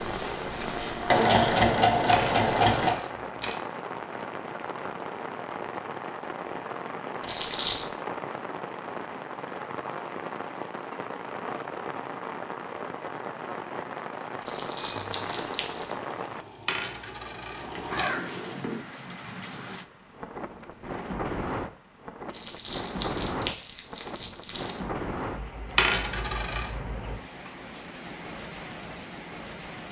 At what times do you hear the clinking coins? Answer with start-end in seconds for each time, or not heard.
2.1-3.6, 16.6-18.1, 25.8-26.7.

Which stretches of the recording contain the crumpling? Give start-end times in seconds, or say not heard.
7.2-7.9, 14.4-15.9, 22.3-24.9.